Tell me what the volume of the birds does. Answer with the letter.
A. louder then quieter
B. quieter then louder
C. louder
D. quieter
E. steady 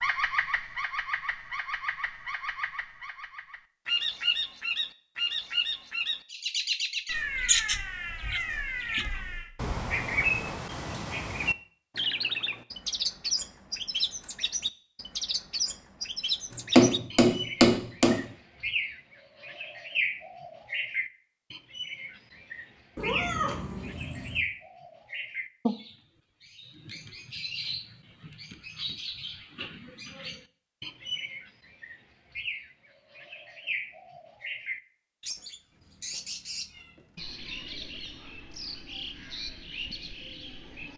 D.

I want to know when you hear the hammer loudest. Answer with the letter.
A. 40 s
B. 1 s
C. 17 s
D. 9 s
C.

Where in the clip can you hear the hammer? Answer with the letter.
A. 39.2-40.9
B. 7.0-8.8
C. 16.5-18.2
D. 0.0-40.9
C.